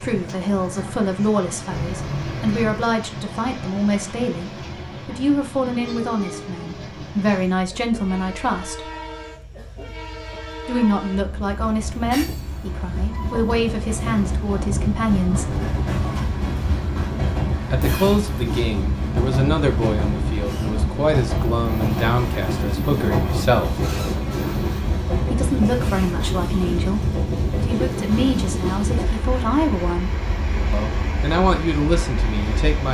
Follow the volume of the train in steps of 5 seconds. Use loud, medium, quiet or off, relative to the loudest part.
medium, medium, medium, loud, loud, loud, medium.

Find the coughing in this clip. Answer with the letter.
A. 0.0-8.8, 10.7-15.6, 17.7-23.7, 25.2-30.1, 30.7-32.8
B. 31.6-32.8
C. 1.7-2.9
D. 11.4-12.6
C.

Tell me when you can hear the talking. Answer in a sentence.
You can hear the talking from 0.0 to 8.8 s, from 10.7 to 15.6 s, from 17.7 to 23.7 s, from 25.2 to 30.1 s and from 30.7 to 32.8 s.